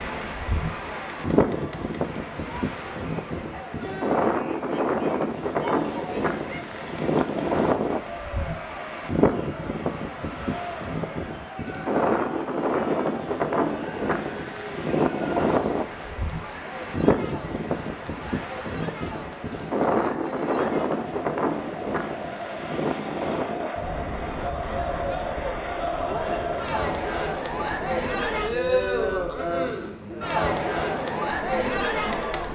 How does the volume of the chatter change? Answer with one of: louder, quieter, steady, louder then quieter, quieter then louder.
louder.